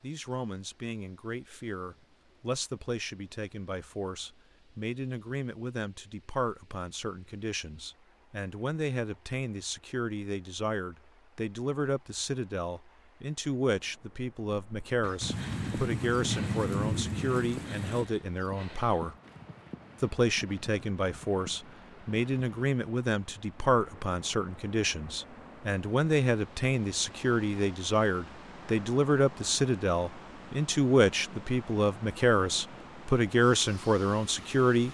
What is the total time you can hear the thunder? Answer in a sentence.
You can hear the thunder for 3 seconds altogether.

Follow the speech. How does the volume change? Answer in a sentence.
The volume of the speech goes up.